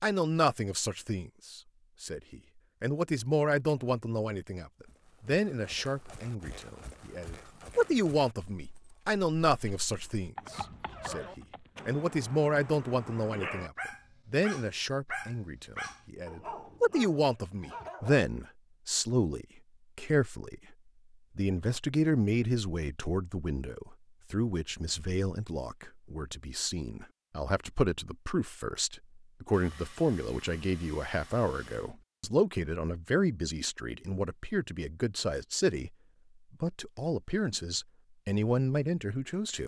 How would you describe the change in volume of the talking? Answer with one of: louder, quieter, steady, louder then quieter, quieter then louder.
steady.